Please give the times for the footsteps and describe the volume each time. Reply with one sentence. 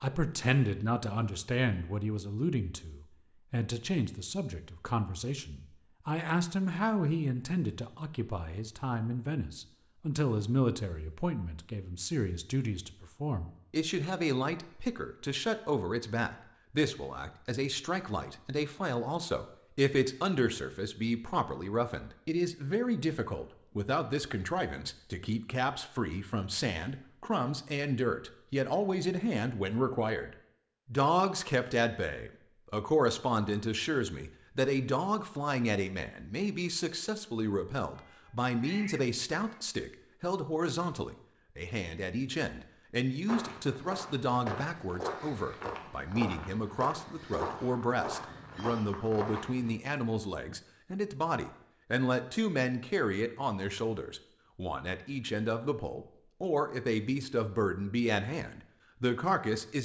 The footsteps can be heard from 43.2 to 49.7 s, at a steady volume.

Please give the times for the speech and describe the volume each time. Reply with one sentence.
The speech can be heard from 0.0 to 59.7 s, at a steady volume.